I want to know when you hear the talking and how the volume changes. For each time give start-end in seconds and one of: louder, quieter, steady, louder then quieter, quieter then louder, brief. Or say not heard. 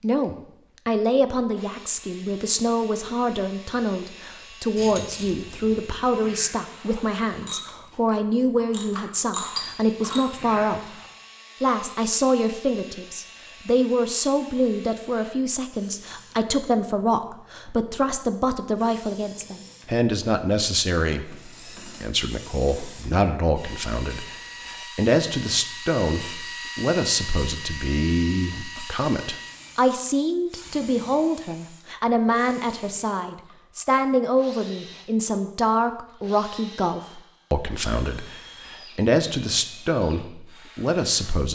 0.0-10.9 steady
11.6-41.4 steady.